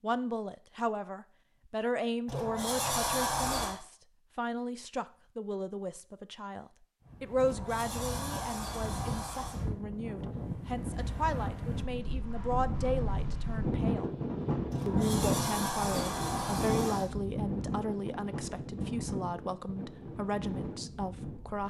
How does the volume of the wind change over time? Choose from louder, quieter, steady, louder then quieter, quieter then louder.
louder then quieter.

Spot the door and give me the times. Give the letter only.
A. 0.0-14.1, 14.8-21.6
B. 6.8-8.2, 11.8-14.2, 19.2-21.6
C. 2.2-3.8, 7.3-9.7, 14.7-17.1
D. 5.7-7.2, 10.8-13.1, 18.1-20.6
C.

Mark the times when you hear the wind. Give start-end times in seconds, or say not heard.
7.0-21.6.